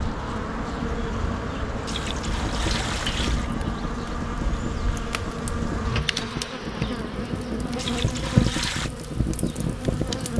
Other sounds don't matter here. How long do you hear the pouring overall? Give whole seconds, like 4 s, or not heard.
3 s.